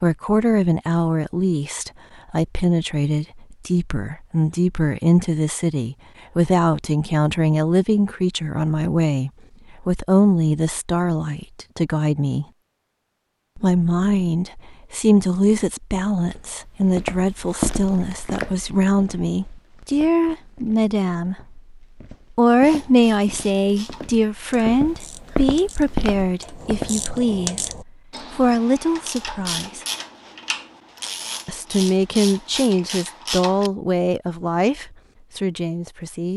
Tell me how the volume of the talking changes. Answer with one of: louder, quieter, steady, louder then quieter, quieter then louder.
steady.